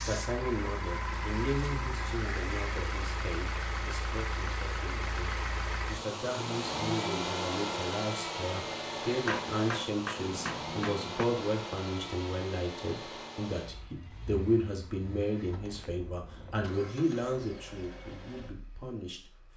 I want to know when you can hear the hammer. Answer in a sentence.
The hammer can be heard from 9.2 to 11.2 s.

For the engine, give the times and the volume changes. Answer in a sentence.
You can hear the engine from 0.0 to 19.5 s, getting quieter.